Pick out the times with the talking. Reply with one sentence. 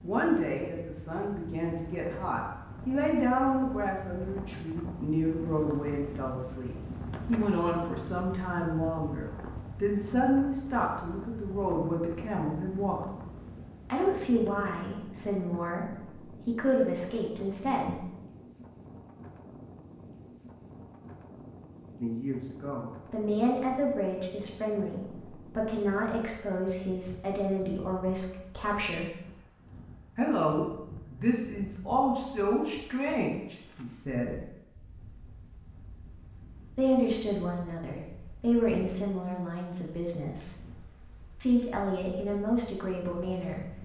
The talking can be heard from 0.0 to 13.1 s, from 13.9 to 18.1 s, from 22.0 to 29.1 s, from 30.1 to 34.5 s, from 36.8 to 40.6 s and from 41.4 to 43.8 s.